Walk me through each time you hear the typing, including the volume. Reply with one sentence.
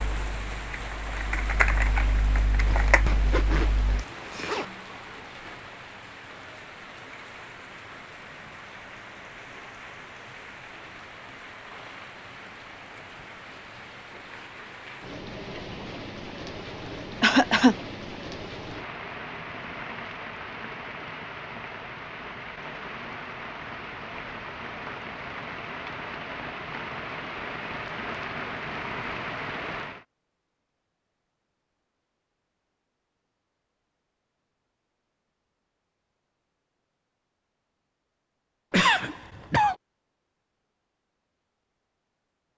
You can hear the typing from 0.0 to 4.0 s, getting louder then quieter.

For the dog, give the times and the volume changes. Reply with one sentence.
You can't hear the dog here.